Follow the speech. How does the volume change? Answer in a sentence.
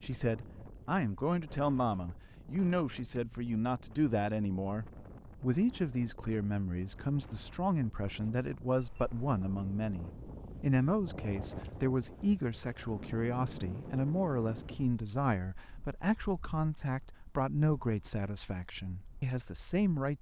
The loudness of the speech stays about the same.